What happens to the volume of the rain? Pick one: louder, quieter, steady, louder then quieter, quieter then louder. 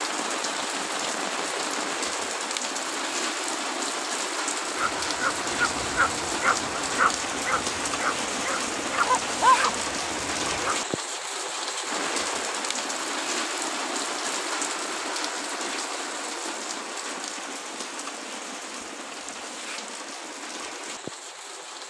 quieter.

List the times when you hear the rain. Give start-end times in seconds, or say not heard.
0.0-21.8.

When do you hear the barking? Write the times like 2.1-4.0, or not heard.
4.8-10.8.